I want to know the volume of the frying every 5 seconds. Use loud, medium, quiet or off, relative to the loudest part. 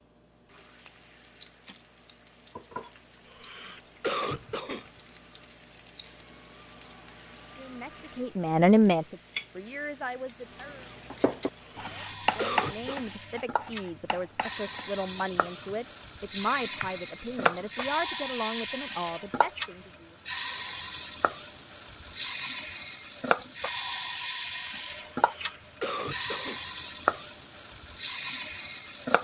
quiet, quiet, medium, loud, loud, loud.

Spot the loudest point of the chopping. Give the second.
12 s.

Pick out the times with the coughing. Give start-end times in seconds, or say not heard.
3.4-4.8, 11.7-13.1, 25.1-26.6.